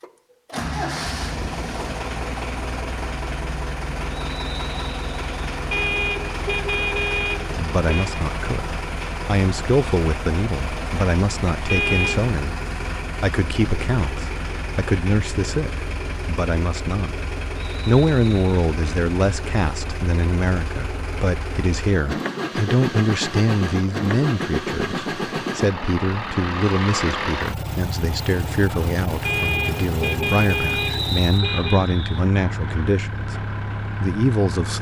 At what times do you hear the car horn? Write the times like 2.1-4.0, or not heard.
5.7-8.2, 11.7-12.3, 29.2-31.8.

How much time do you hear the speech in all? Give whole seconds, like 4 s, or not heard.
26 s.